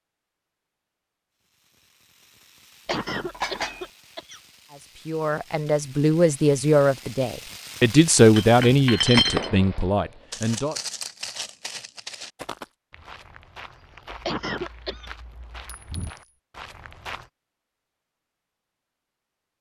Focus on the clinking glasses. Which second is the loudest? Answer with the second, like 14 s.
9 s.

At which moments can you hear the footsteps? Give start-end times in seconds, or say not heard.
10.3-17.3.